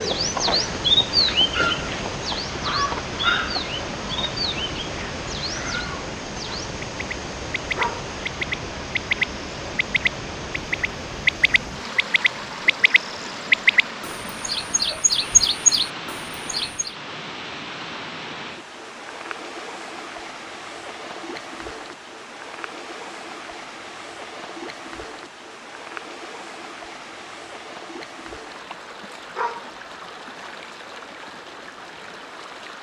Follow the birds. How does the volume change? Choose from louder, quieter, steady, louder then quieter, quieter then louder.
quieter then louder.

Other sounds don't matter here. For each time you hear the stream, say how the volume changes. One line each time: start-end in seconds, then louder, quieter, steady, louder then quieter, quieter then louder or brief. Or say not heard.
0.0-32.7 quieter.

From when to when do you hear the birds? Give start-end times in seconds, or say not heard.
0.0-16.9.